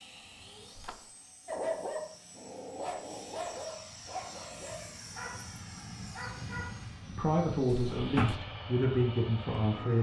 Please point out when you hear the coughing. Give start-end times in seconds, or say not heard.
not heard.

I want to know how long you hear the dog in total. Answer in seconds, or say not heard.
5 s.